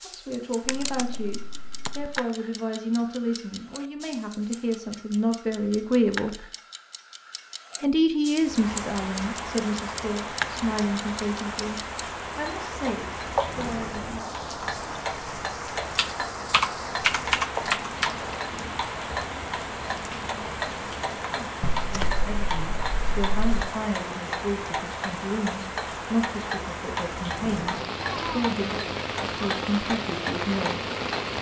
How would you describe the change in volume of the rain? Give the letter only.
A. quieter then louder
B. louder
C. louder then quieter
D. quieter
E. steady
E.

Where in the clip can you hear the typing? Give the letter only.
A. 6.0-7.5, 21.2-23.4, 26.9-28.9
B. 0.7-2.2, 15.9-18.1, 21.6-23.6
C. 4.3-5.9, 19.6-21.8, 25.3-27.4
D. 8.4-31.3
B.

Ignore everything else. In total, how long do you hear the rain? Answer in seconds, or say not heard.
23 s.